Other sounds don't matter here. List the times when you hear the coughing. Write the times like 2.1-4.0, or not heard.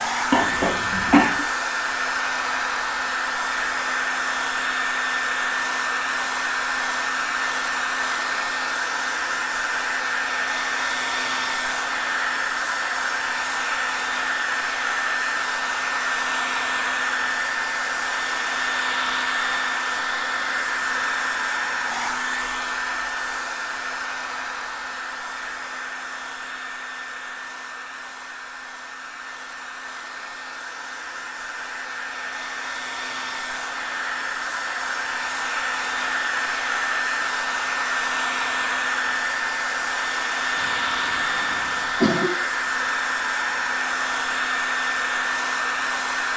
0.3-1.4, 40.5-42.3.